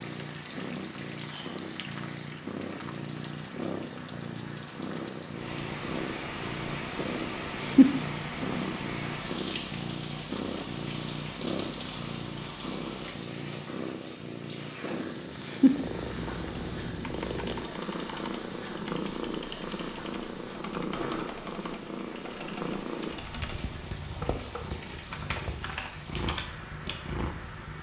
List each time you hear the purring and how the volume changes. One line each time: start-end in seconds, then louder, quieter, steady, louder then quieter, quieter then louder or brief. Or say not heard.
0.0-27.7 louder then quieter.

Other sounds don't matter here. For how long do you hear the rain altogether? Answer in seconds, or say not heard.
28 s.